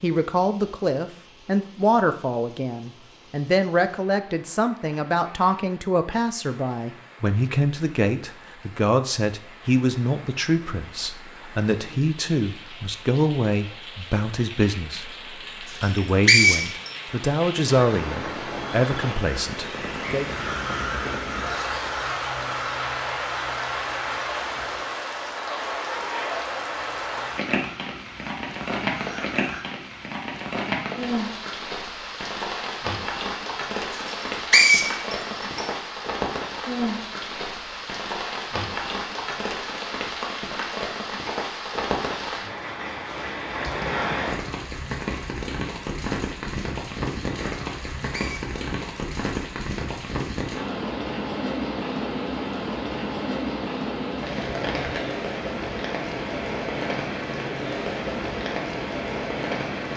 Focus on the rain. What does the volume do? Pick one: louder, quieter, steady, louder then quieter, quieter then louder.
louder.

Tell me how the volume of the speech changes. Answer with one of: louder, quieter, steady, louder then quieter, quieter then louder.
steady.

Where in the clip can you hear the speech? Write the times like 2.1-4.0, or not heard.
0.0-20.2.